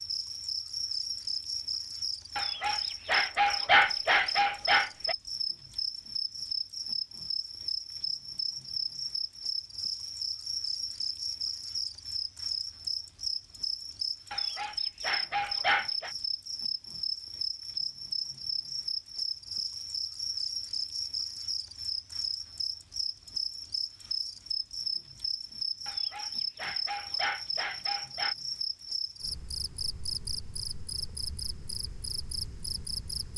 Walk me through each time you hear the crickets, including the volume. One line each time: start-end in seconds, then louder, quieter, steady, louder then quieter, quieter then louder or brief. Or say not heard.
0.0-33.3 steady.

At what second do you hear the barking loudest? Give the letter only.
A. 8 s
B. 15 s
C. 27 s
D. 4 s
D.